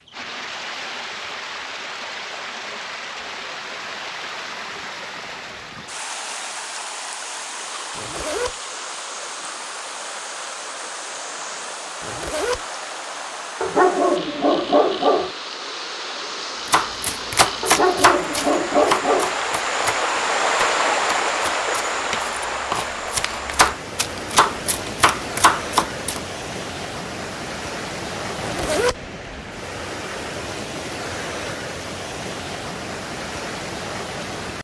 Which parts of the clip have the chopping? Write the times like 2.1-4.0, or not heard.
16.6-26.2.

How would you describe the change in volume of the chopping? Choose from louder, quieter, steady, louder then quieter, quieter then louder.
quieter then louder.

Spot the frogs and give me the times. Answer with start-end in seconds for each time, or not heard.
not heard.